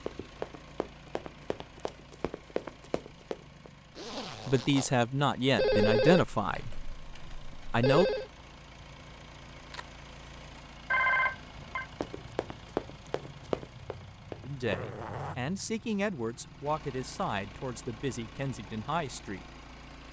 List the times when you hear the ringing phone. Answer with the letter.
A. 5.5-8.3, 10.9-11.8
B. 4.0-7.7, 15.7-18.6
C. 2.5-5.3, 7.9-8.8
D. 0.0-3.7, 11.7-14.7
A.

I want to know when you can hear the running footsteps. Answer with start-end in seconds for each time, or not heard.
0.0-3.7, 11.7-14.7.